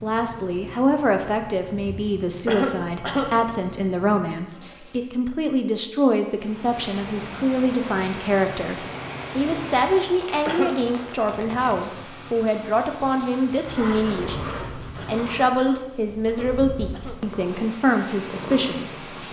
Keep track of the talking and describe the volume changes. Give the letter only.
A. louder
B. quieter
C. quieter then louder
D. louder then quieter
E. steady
E.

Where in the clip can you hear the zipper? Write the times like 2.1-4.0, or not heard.
4.5-5.0, 13.6-15.4.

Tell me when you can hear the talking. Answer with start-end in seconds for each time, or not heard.
0.0-19.0.